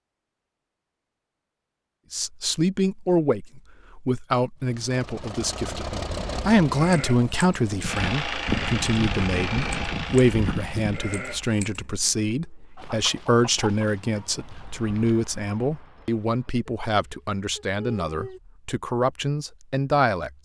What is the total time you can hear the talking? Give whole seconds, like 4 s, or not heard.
18 s.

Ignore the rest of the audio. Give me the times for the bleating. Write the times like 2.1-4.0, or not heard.
6.7-11.8.